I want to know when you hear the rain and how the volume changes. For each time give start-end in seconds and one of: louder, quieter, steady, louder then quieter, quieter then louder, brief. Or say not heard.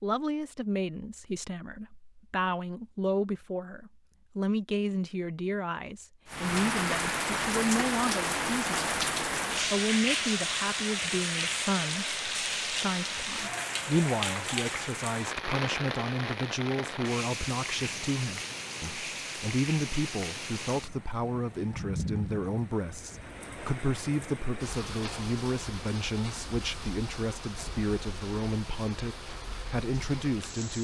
6.2-30.7 quieter.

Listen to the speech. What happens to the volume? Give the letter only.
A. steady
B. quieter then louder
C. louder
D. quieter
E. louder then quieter
A.